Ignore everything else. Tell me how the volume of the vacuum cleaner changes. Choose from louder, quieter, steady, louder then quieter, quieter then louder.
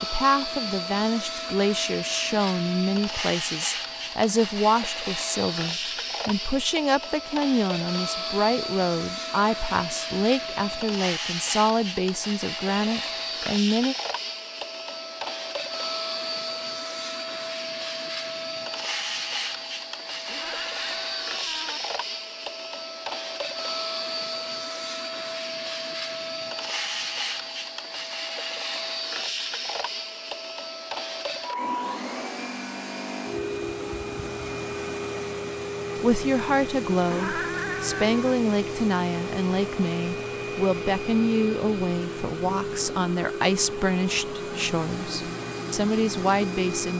steady.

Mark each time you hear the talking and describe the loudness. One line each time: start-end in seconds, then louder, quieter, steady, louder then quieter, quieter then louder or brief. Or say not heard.
0.0-13.9 steady
36.0-46.9 steady.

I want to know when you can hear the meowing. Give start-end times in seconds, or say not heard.
20.2-21.8, 37.0-38.2.